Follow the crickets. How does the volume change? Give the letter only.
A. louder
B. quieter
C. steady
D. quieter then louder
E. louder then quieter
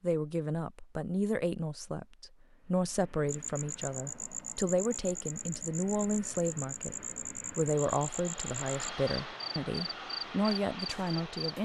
C.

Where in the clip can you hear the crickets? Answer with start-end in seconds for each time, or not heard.
3.2-11.6.